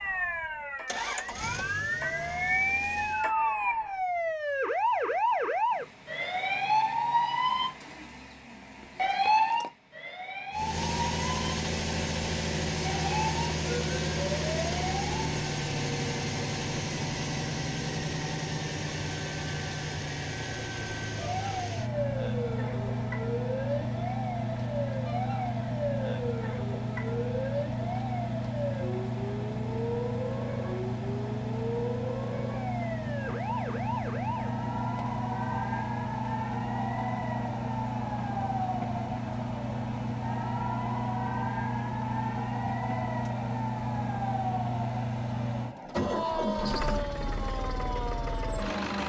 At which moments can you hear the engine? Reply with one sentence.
The engine can be heard from 0.0 to 3.3 s and from 10.5 to 49.0 s.